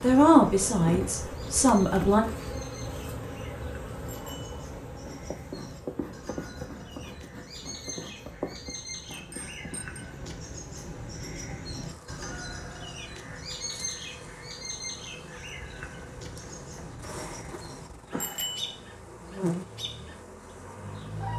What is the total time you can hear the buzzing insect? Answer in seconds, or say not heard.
21 s.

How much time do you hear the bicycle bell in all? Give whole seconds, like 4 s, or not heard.
2 s.